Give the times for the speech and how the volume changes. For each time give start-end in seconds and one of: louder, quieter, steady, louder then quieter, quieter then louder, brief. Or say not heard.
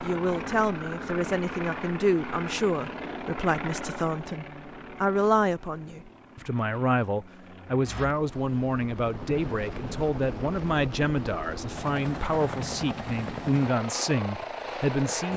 0.0-15.3 steady.